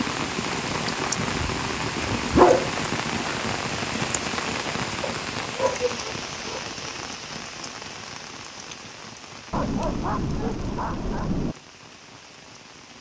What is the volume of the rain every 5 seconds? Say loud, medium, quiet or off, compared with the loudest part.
loud, medium, quiet.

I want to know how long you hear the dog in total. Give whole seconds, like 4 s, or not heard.
6 s.